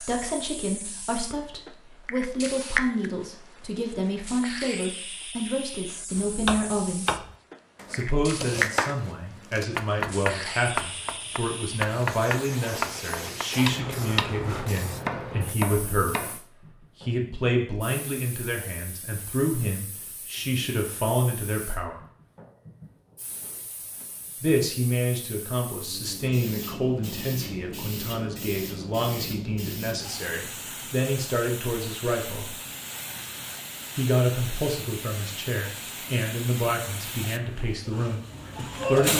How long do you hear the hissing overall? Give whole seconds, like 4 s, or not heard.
39 s.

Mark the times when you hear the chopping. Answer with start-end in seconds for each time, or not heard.
6.2-16.4.